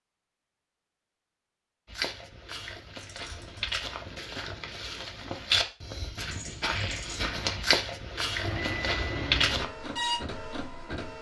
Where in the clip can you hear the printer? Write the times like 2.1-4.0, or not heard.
8.4-11.1.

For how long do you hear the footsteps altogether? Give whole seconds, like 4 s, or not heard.
8 s.